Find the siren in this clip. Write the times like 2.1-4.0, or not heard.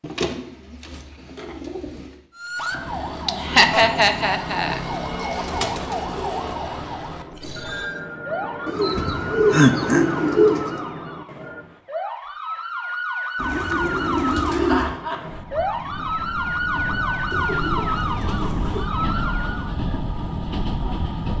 2.4-19.7.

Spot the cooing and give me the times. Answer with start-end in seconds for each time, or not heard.
0.0-2.1, 4.7-6.5, 8.7-10.8, 13.3-14.9, 17.3-18.9.